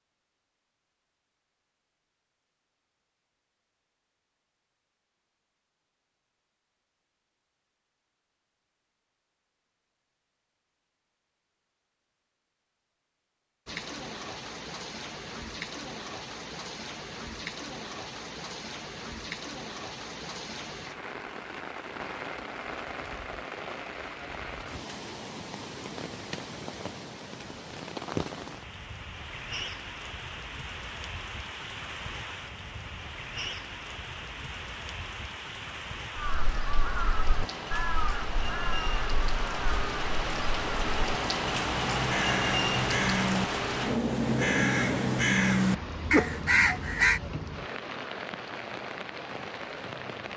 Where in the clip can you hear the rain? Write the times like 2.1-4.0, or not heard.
13.7-50.3.